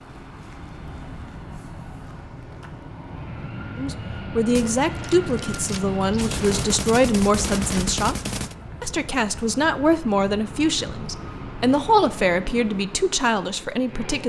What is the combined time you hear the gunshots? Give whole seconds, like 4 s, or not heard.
4 s.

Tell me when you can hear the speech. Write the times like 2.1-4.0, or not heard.
3.8-8.2, 8.8-14.2.